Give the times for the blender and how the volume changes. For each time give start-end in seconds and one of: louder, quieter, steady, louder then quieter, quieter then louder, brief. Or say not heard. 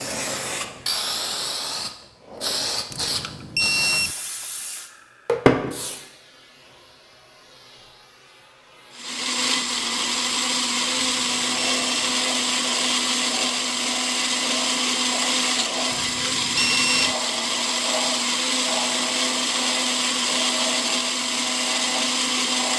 8.9-22.7 steady.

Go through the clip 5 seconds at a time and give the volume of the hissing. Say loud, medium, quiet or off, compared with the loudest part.
loud, loud, medium, medium, medium.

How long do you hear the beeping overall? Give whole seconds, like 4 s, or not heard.
4 s.